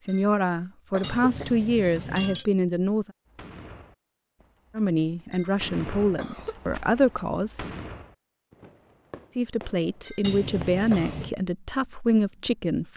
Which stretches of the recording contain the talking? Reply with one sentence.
You can hear the talking from 0.0 to 3.1 s, from 4.8 to 7.6 s and from 9.3 to 12.9 s.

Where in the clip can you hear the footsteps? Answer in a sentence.
The footsteps can't be heard in this clip.